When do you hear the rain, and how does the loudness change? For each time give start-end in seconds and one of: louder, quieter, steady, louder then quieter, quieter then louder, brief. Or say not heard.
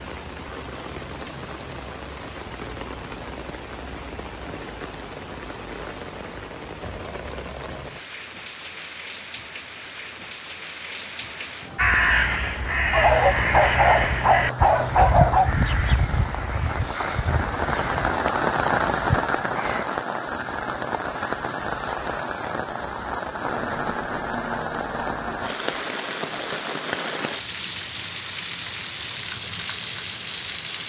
0.0-30.8 louder.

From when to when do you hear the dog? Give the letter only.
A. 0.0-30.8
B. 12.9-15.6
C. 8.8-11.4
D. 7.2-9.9
B.